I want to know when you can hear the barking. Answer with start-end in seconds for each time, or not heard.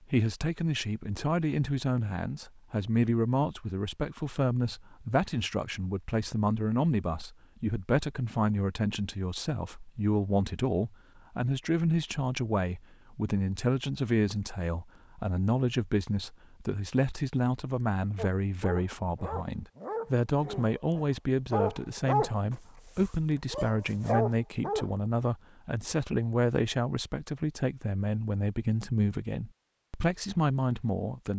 18.1-24.9.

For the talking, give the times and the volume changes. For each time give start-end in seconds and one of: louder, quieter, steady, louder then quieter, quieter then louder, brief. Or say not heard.
0.1-31.3 steady.